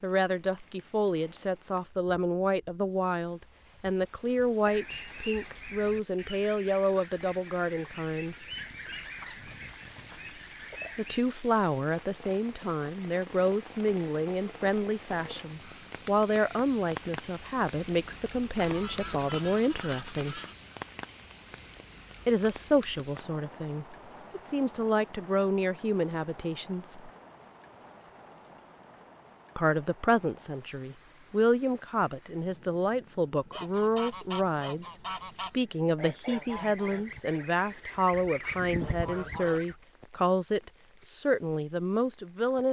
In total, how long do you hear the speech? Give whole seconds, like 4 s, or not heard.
36 s.